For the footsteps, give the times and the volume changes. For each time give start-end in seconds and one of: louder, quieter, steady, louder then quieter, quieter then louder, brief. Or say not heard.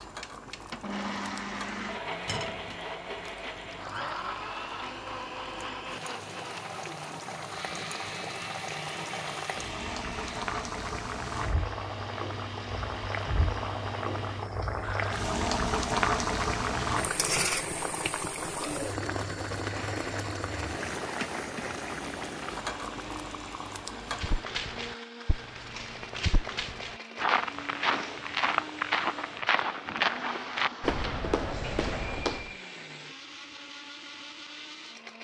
24.1-32.5 louder.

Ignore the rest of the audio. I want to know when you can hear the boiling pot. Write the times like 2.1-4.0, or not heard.
0.0-24.4.